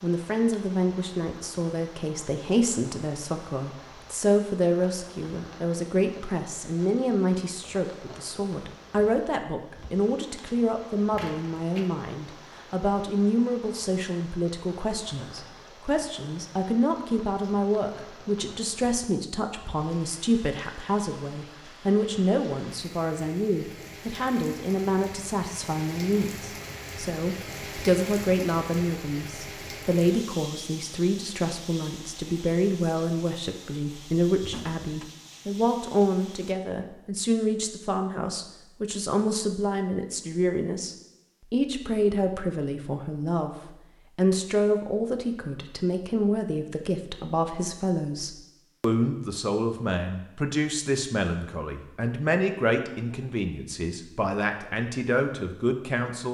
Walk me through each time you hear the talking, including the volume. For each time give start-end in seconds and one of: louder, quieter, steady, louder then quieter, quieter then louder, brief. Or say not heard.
0.0-43.5 steady
44.1-56.2 steady.